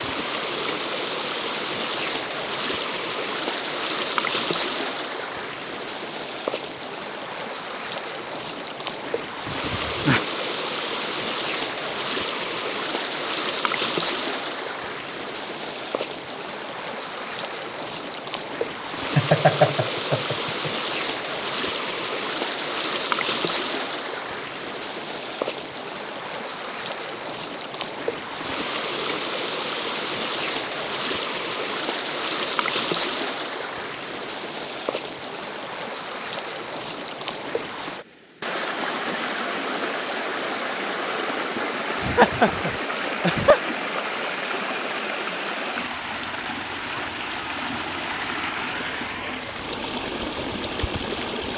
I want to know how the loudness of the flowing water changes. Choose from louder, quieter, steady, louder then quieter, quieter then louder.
steady.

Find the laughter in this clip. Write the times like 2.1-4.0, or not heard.
9.4-10.2, 18.7-20.7, 42.0-43.6.